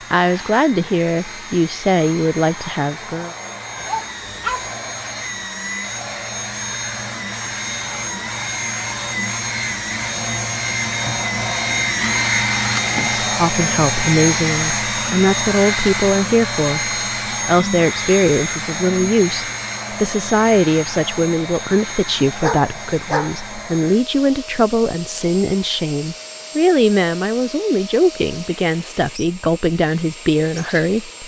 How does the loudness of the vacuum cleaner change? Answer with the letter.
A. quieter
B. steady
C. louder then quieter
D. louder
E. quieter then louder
C.